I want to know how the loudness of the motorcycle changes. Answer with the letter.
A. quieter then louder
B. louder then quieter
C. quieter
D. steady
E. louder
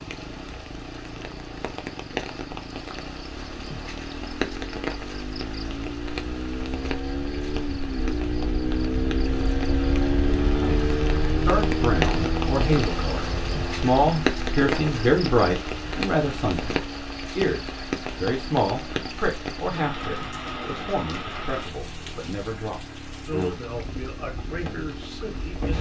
B.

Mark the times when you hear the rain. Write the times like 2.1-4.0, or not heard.
0.0-25.7.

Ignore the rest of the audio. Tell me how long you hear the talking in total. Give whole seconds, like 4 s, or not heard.
15 s.